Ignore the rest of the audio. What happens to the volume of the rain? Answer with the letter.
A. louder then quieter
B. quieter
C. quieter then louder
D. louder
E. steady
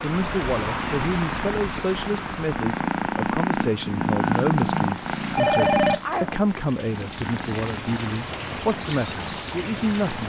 C.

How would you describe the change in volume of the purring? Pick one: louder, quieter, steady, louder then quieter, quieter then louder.
louder then quieter.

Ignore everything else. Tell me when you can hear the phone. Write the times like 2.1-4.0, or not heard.
5.3-6.3.